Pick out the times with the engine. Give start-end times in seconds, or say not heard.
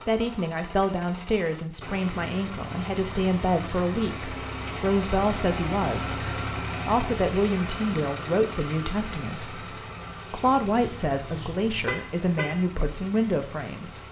0.0-14.0.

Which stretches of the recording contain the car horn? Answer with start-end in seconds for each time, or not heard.
10.8-12.7.